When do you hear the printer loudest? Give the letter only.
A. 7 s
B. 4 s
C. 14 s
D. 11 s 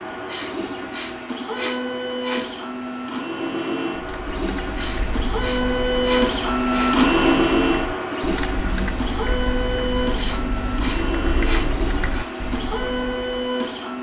A.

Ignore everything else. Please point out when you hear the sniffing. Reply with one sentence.
The sniffing can be heard from 0.2 to 2.5 s, from 4.8 to 7.0 s and from 10.2 to 12.3 s.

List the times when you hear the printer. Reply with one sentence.
You can hear the printer from 0.0 to 13.9 s.